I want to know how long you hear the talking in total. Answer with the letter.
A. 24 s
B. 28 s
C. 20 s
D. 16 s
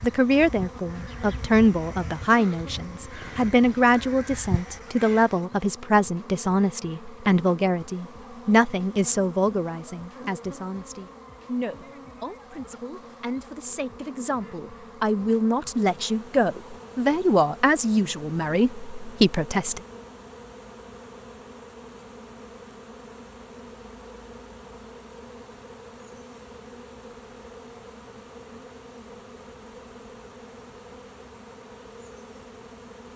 C.